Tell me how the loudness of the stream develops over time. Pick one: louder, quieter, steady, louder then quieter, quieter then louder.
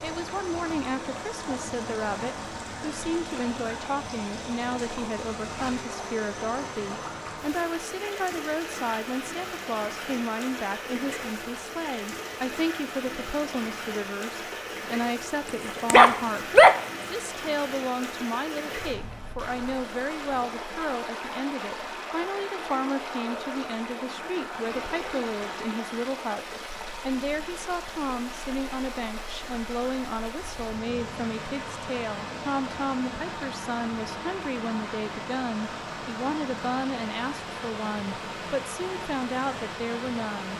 steady.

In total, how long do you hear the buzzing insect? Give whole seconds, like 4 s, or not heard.
not heard.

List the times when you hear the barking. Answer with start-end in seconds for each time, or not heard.
15.4-16.8.